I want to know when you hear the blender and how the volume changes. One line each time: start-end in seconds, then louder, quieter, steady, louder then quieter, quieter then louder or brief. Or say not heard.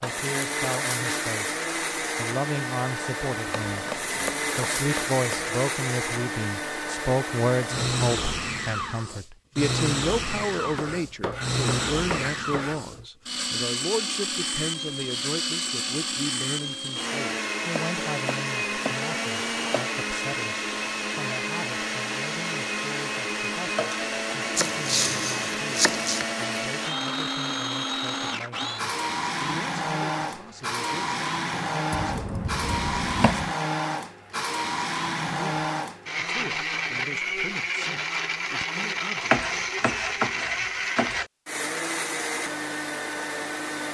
0.0-43.9 steady.